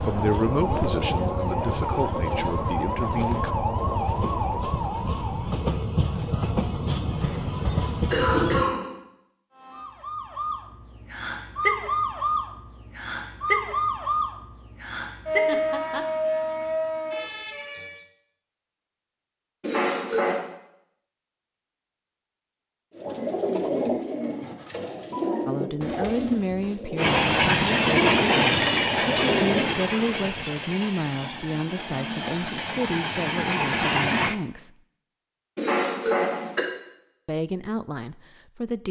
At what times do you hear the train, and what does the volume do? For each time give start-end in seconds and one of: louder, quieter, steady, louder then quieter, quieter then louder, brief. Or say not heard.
0.0-8.7 louder
26.9-34.4 quieter then louder.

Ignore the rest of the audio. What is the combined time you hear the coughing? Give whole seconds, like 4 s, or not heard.
4 s.